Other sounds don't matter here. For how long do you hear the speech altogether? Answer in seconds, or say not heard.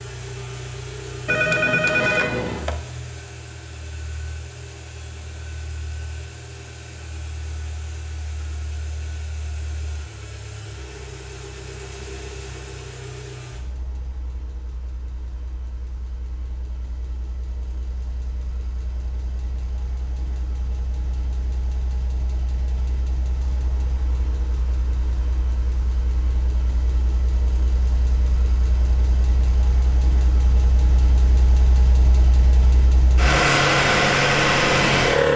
not heard.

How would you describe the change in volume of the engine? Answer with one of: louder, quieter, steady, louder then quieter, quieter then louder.
quieter then louder.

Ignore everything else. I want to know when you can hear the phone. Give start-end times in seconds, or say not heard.
1.2-2.8.